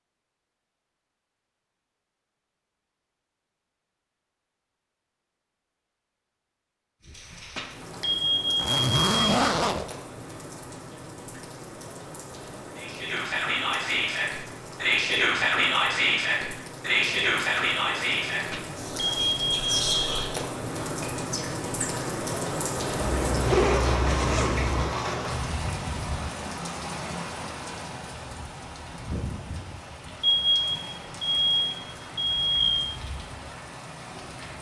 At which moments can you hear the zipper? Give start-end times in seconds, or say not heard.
8.6-9.9, 23.0-24.9.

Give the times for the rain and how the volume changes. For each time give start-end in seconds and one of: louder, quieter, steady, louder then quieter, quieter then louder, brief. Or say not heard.
7.0-34.5 louder then quieter.